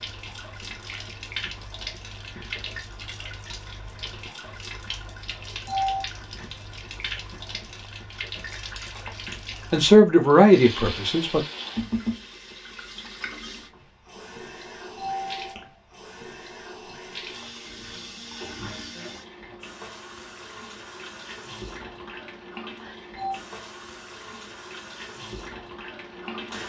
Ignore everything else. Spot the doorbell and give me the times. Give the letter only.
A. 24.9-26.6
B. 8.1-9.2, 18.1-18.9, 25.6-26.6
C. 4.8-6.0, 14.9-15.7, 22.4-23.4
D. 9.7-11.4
C.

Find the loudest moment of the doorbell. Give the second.
6 s.